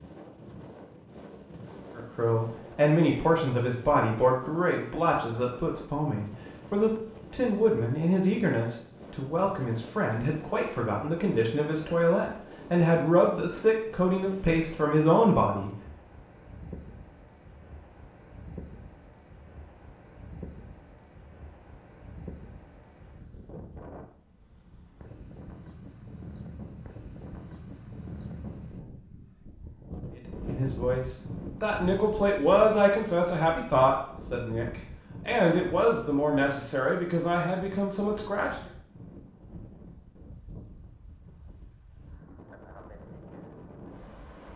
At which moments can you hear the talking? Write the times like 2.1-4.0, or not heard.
1.9-15.8, 30.1-38.6.